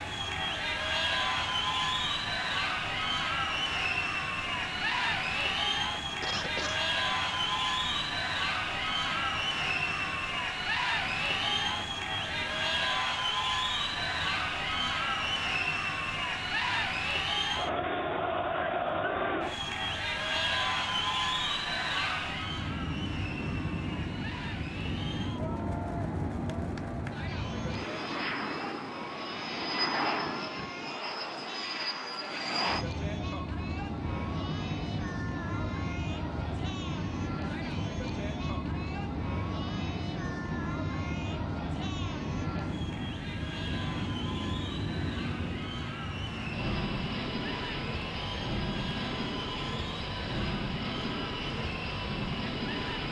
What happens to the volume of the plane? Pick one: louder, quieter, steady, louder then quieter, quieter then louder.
louder.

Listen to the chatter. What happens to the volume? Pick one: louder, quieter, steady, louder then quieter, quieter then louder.
quieter.